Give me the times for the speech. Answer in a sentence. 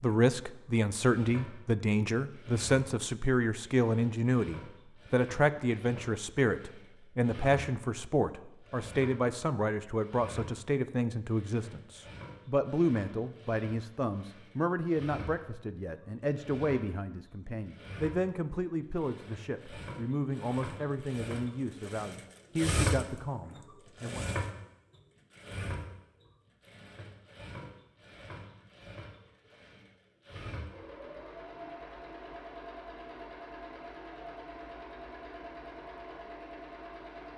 You can hear the speech from 0.0 to 24.2 s.